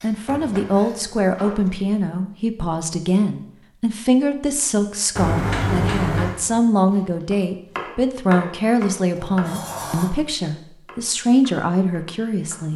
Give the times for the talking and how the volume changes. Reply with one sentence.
The talking can be heard from 0.0 to 12.7 s, at a steady volume.